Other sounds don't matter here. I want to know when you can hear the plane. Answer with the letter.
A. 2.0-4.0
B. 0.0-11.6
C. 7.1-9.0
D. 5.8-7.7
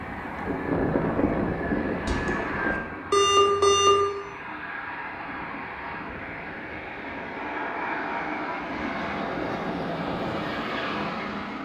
B.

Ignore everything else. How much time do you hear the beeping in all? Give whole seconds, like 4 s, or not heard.
2 s.